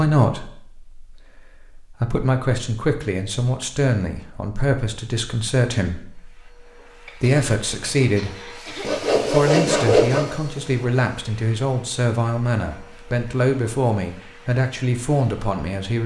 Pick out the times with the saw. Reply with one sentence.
You can hear the saw from 8.8 to 10.3 s.